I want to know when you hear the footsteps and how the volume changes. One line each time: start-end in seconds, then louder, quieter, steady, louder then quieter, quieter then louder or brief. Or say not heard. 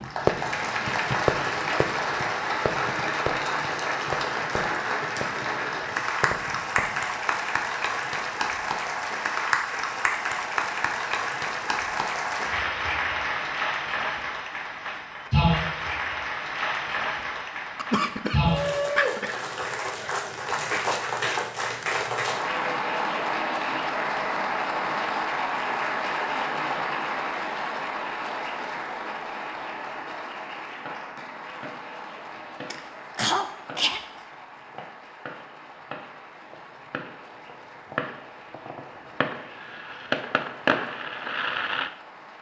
not heard.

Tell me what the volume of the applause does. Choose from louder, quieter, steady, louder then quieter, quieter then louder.
quieter.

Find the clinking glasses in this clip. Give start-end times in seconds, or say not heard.
not heard.